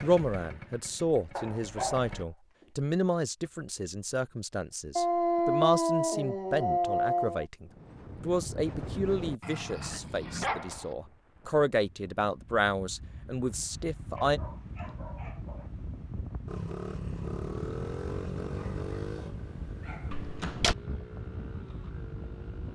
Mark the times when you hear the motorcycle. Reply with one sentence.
The motorcycle can be heard from 0.0 to 2.2 s and from 16.4 to 22.7 s.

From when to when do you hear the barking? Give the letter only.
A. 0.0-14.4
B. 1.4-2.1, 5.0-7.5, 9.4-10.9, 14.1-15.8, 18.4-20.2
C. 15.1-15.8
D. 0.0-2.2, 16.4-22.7
B.